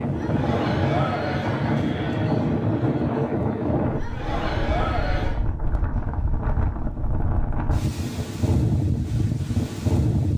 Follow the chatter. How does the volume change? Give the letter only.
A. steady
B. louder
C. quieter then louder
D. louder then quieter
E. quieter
C.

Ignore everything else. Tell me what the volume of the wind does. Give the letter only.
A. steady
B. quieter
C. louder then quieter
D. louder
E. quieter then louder
E.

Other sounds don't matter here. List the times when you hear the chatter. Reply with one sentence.
The chatter can be heard from 0.0 to 5.5 s.